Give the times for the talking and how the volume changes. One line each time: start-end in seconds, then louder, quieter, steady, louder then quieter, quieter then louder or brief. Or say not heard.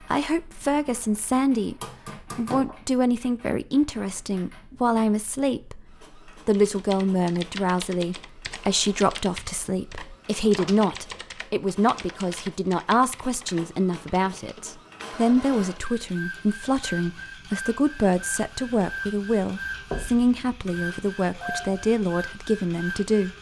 0.1-1.8 brief
2.4-23.3 steady.